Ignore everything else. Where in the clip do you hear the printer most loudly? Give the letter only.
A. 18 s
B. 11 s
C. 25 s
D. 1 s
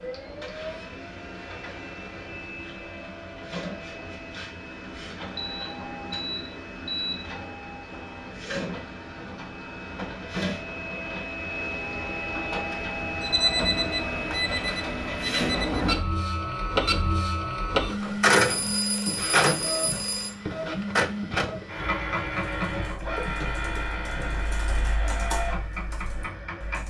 A.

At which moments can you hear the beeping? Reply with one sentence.
You can hear the beeping from 5.3 to 7.2 s, from 13.2 to 15.8 s and from 18.4 to 20.4 s.